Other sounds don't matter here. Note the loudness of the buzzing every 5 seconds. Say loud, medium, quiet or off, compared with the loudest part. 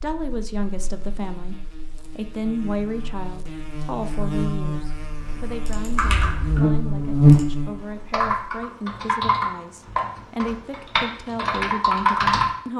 quiet, loud, off.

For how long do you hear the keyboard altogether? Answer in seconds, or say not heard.
7 s.